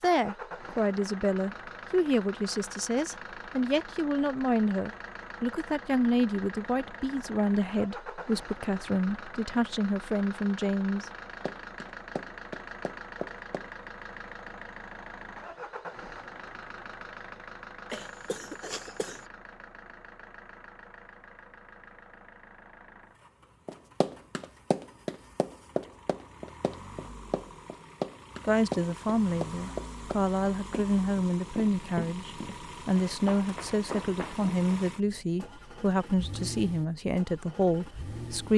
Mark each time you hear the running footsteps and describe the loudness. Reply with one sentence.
The running footsteps can be heard briefly from 11.4 to 13.7 s; and from 23.6 to 34.7 s, getting quieter.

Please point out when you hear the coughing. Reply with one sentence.
The coughing can be heard from 17.9 to 19.2 s.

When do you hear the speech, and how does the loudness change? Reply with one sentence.
The speech can be heard from 0.0 to 11.1 s, at a steady volume; and from 28.4 to 38.5 s, at a steady volume.